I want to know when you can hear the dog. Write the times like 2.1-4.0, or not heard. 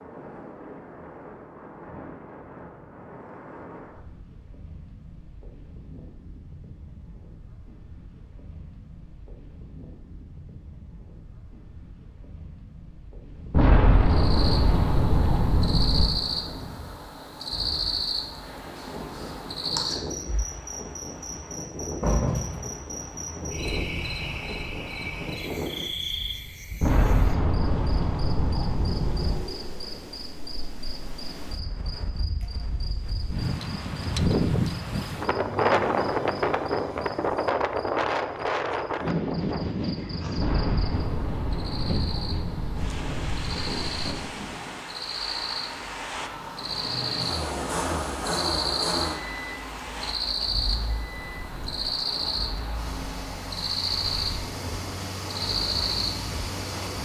not heard.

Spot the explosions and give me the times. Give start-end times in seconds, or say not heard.
13.5-16.1, 26.8-29.4, 40.4-44.2.